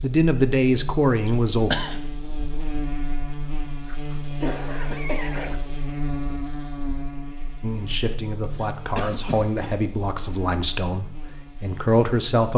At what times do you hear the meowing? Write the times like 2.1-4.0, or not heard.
3.9-5.7.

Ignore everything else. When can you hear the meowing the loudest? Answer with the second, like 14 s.
5 s.